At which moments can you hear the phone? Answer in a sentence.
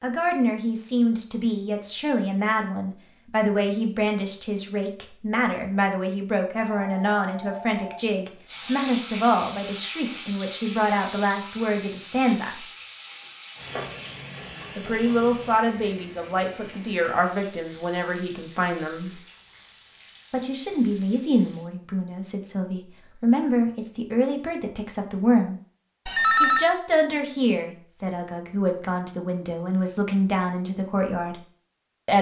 You can hear the phone from 6.5 to 8.0 s and from 26.1 to 26.6 s.